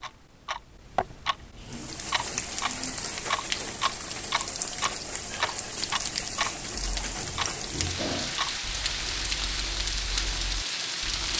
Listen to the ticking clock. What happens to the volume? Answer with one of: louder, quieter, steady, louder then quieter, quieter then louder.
quieter.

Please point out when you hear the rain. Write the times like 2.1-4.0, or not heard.
1.6-11.3.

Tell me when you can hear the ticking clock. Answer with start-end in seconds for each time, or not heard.
0.0-11.3.